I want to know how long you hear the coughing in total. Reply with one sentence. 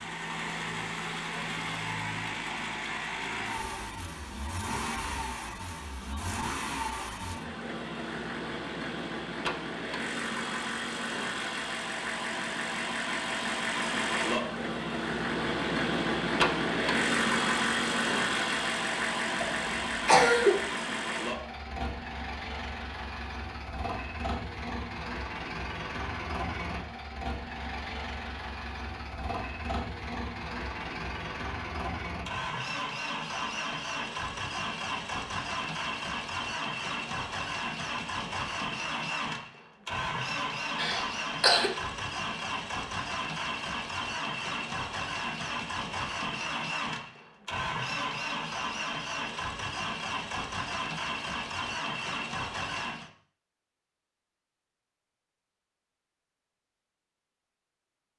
The coughing can be heard for 2 seconds in total.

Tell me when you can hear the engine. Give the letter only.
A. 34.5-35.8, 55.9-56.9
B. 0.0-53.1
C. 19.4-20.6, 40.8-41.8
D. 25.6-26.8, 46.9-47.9
B.